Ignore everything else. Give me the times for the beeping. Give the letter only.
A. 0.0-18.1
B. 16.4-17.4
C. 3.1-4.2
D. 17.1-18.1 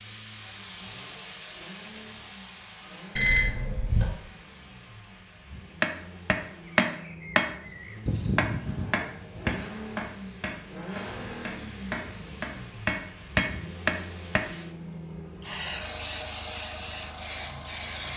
C.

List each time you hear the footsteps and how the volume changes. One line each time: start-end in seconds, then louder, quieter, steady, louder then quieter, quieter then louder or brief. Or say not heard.
not heard.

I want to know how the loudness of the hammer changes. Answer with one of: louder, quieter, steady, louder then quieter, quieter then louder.
quieter then louder.